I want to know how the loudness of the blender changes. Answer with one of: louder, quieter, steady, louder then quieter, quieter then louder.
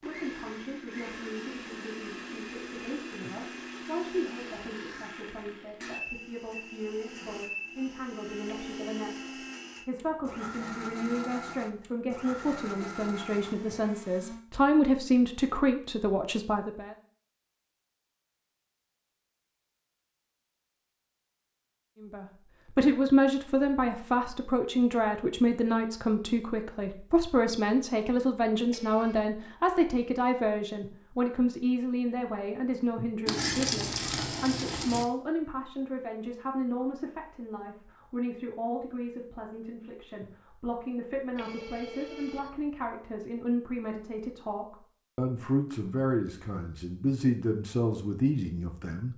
steady.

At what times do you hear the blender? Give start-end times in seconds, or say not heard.
0.0-14.4.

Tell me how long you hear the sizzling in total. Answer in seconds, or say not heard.
2 s.